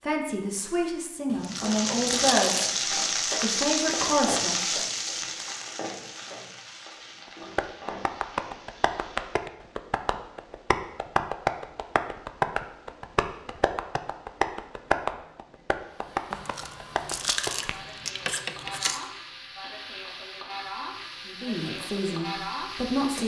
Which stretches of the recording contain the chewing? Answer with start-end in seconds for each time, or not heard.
1.2-2.7, 16.3-19.1.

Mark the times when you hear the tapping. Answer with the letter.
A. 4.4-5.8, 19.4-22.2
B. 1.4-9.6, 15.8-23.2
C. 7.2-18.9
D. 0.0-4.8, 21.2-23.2
C.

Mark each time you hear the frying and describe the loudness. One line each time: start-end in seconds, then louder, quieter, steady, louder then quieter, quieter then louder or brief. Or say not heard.
1.4-9.6 quieter
15.8-23.2 louder.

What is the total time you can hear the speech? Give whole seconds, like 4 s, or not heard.
7 s.